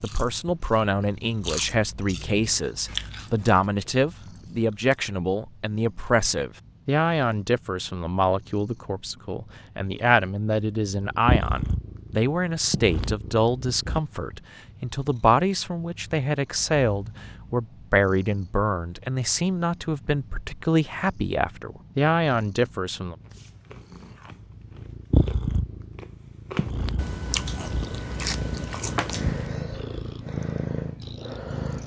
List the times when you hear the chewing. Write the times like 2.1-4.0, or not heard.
0.0-5.0, 23.2-29.6.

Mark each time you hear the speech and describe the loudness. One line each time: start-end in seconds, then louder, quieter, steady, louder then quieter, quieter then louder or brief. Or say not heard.
0.0-23.1 steady.